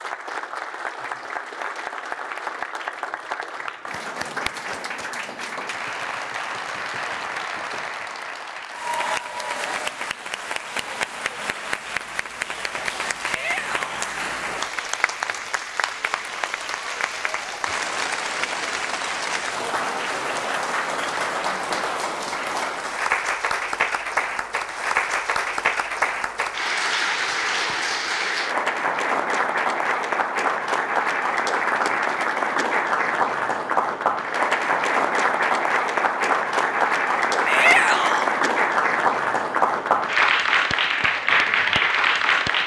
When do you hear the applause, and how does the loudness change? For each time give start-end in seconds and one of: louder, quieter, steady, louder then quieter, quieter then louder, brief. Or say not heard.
0.0-42.6 louder.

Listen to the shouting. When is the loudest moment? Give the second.
38 s.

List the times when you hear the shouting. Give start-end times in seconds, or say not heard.
13.2-13.9, 37.5-38.3.